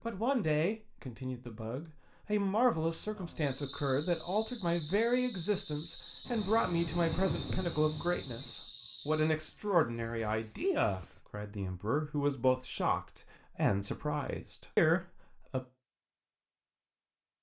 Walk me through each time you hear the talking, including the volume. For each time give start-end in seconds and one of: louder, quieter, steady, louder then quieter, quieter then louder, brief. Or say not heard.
0.1-15.7 steady.